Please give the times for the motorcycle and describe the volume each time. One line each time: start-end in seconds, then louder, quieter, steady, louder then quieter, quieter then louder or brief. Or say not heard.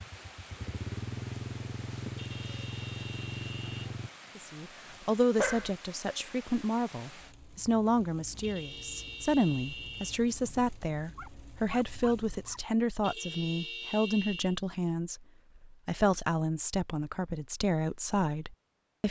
0.0-4.1 steady.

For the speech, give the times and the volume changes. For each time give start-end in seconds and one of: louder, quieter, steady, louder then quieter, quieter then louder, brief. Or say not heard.
4.3-19.0 steady.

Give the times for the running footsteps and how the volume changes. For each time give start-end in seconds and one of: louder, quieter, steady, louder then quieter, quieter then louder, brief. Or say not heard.
not heard.